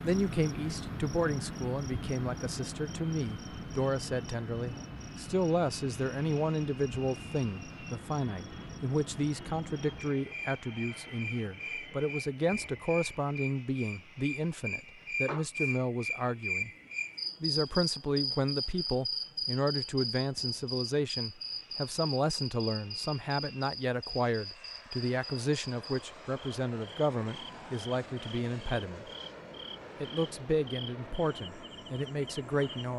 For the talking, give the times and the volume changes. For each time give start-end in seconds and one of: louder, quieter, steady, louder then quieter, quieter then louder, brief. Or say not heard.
0.0-16.7 steady
17.4-29.1 steady
30.0-32.9 brief.